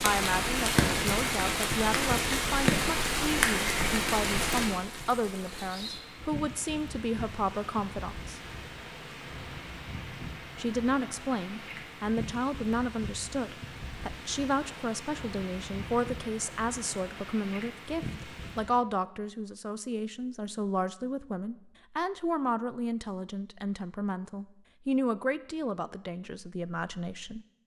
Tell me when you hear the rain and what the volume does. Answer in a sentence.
You can hear the rain from 0.0 to 18.8 s, getting quieter.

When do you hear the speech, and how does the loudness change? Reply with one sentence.
The speech can be heard from 0.0 to 8.4 s, at a steady volume; and from 10.6 to 27.4 s, at a steady volume.